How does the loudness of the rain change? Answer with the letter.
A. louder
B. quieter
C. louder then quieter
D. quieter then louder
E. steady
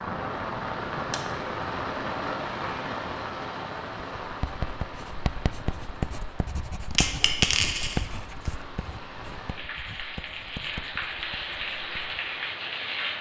D.